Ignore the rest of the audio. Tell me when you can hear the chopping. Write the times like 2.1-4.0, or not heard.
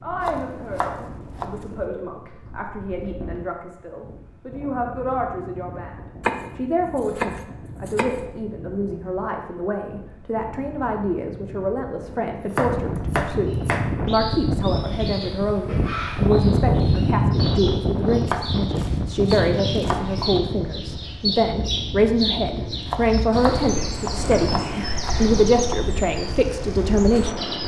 0.2-1.6, 6.2-8.2, 12.3-14.0, 18.2-20.3, 22.9-25.8.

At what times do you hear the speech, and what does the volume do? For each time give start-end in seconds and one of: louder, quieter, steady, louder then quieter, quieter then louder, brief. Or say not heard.
0.0-27.6 louder.